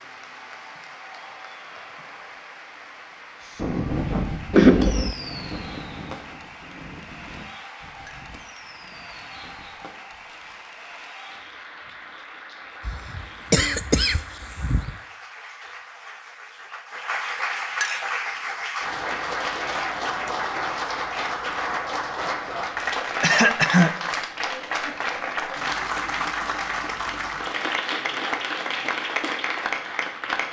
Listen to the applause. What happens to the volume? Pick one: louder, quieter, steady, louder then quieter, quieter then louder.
louder.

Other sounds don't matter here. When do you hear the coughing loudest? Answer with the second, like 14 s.
5 s.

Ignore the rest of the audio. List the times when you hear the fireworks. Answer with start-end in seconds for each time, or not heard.
3.5-10.8.